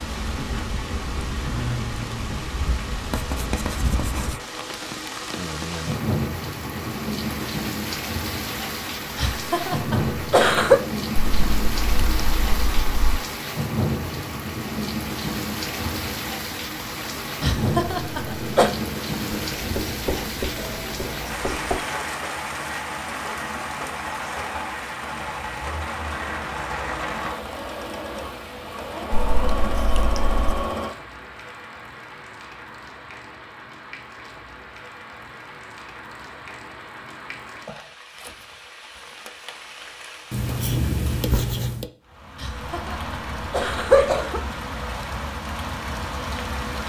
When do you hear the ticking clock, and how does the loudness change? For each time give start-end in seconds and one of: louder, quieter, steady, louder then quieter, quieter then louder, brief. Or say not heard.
not heard.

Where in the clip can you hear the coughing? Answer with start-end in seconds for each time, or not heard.
9.2-10.8, 17.4-18.7, 42.4-44.4.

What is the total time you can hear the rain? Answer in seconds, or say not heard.
47 s.